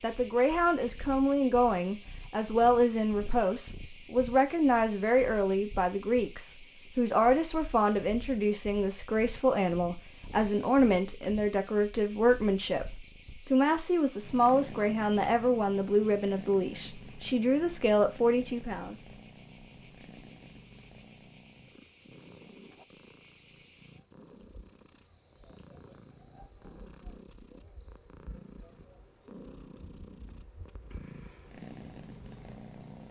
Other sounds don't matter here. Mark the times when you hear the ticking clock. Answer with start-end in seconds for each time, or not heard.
not heard.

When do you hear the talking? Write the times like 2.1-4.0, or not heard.
0.0-18.9.